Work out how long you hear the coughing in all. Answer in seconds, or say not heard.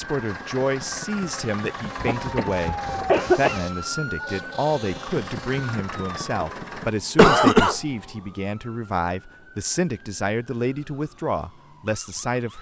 2 s.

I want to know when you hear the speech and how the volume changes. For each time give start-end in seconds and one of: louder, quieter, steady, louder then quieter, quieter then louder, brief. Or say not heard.
0.0-12.5 steady.